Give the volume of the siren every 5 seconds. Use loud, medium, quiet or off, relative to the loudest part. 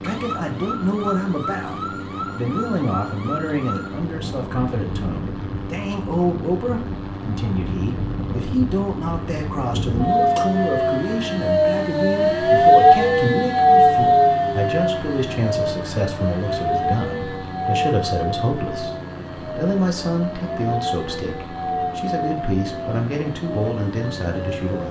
quiet, quiet, loud, medium, quiet.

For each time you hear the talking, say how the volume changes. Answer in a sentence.
You can hear the talking briefly from 0.0 to 1.8 s; and from 2.4 to 24.8 s, at a steady volume.